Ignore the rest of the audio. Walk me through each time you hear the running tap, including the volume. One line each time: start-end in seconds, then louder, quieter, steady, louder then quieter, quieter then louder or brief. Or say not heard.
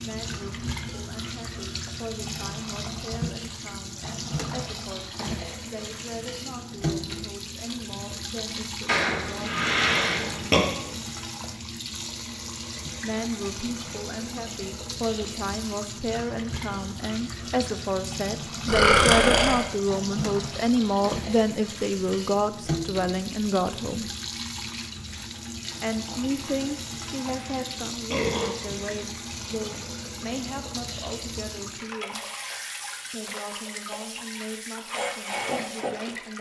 0.0-36.3 steady.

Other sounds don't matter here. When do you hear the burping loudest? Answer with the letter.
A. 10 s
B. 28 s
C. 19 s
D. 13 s
C.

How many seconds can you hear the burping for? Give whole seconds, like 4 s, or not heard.
5 s.